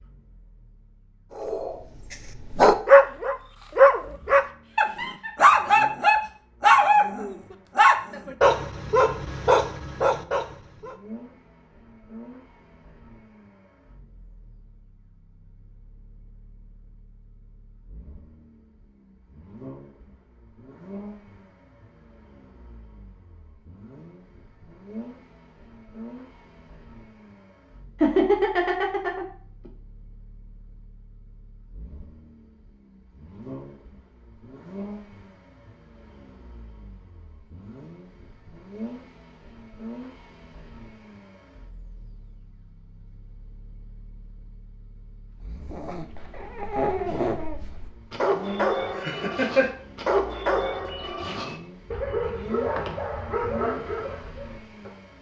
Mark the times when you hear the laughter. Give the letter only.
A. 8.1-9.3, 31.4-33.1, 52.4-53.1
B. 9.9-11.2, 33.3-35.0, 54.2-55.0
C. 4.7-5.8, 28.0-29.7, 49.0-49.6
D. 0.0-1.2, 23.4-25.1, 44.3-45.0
C.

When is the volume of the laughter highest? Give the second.
28 s.